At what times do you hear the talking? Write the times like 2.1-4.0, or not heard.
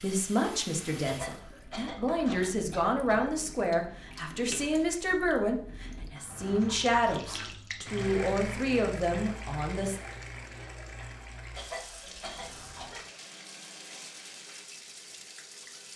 0.0-10.0.